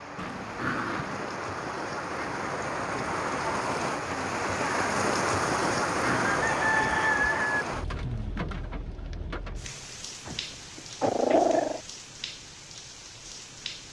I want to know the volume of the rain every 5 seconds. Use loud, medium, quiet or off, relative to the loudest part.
loud, loud, quiet.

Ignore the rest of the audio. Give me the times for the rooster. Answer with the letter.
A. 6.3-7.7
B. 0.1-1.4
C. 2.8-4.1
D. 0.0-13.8
A.